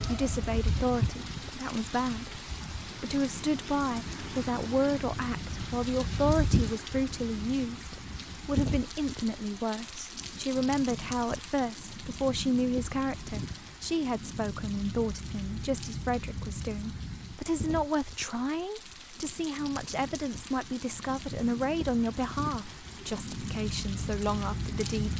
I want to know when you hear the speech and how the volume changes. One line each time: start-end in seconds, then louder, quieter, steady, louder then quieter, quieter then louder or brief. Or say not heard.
0.1-25.1 steady.